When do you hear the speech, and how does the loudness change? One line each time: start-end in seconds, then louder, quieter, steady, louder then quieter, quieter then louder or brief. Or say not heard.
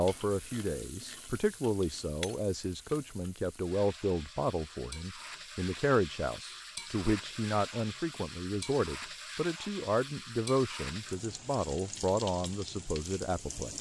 0.0-13.7 steady.